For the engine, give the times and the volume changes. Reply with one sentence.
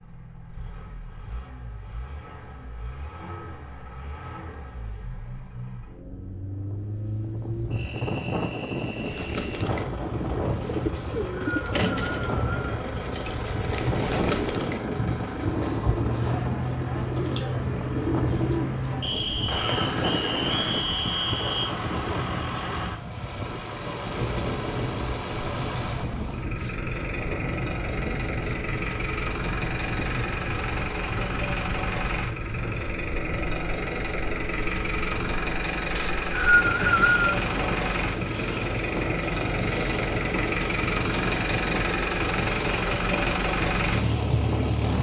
The engine can be heard from 0.0 to 44.9 s, getting louder.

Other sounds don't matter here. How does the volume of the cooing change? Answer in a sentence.
The loudness of the cooing stays about the same.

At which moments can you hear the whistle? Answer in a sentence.
The whistle can be heard from 10.9 to 12.7 s, from 19.0 to 21.8 s and from 36.0 to 37.4 s.